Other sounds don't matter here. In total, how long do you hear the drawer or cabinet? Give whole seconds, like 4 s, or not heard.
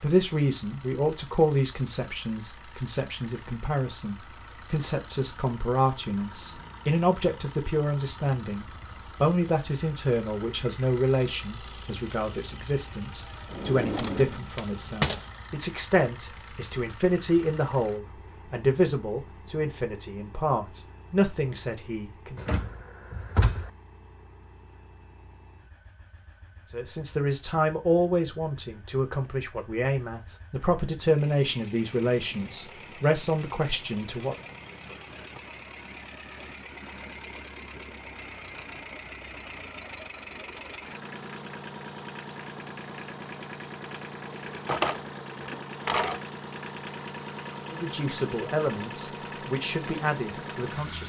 5 s.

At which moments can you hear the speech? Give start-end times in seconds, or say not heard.
0.0-22.4, 26.7-34.4, 47.7-51.0.